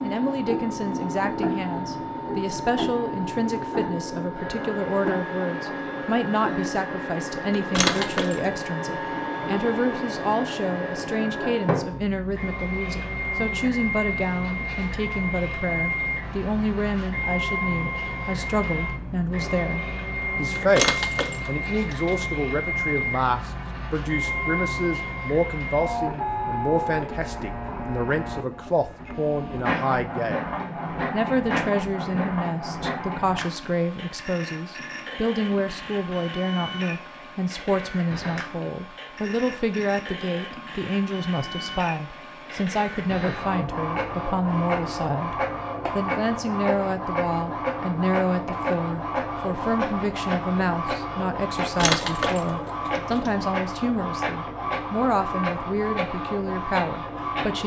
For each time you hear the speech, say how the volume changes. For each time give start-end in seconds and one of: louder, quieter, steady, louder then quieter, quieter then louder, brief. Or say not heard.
0.0-57.6 steady.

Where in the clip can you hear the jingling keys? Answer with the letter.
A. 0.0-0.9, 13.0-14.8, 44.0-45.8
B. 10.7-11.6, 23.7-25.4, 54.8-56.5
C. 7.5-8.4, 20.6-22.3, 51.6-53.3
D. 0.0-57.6
C.